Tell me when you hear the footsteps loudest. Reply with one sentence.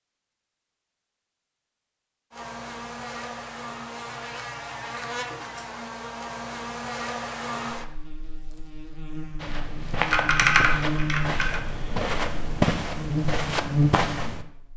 The loudest moment of the footsteps is at 13 seconds.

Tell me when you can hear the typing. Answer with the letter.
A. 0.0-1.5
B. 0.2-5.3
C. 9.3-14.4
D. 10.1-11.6
D.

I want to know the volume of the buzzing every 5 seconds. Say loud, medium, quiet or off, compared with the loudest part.
medium, medium, loud.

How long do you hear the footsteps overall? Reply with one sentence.
You can hear the footsteps for 5 seconds altogether.